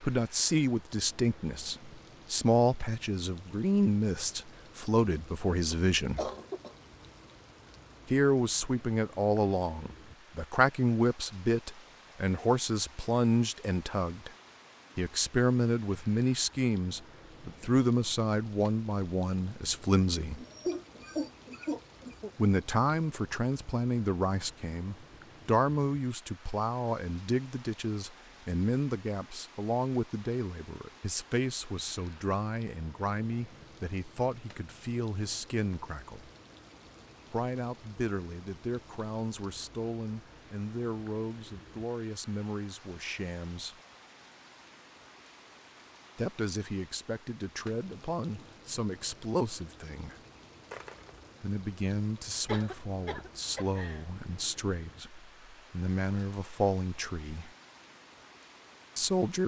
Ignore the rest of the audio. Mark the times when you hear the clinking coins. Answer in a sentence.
The clinking coins can be heard from 50.7 to 51.3 s.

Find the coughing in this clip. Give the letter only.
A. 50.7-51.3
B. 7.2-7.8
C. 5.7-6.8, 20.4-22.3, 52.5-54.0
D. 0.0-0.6
C.